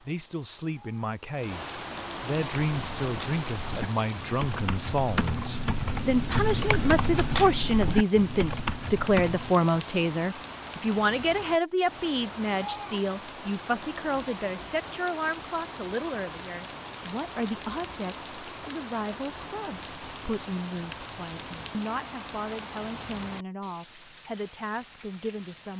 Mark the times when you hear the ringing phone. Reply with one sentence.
The ringing phone can't be heard in this clip.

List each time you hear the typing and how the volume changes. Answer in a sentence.
The typing can be heard from 2.6 to 9.6 s, getting louder.